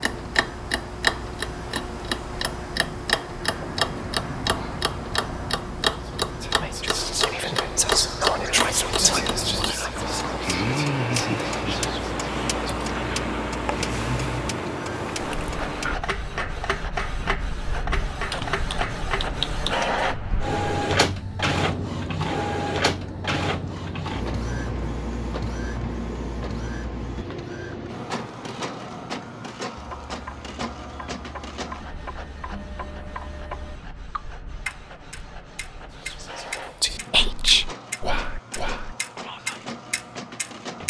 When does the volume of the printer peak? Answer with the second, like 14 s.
21 s.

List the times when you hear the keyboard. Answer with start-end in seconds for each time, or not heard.
18.3-19.8.